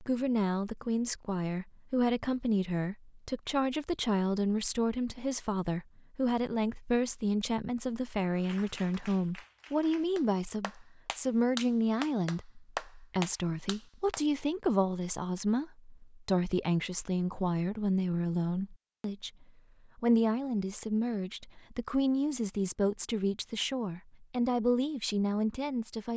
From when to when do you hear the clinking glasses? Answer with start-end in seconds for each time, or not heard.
not heard.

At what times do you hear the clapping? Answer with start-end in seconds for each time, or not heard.
8.3-14.2.